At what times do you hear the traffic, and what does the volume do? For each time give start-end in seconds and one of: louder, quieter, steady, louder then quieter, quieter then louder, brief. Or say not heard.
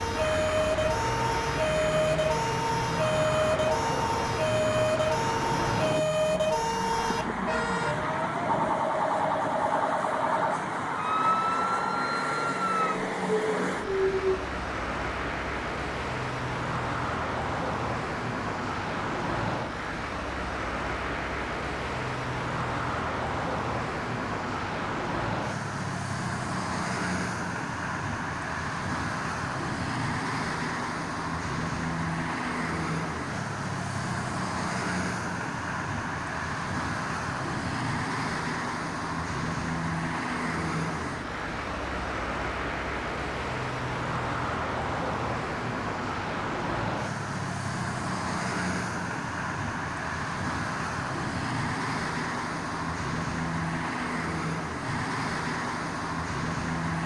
0.0-57.0 steady.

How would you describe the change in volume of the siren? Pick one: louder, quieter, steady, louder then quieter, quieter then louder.
steady.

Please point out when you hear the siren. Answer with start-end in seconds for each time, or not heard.
0.0-14.4.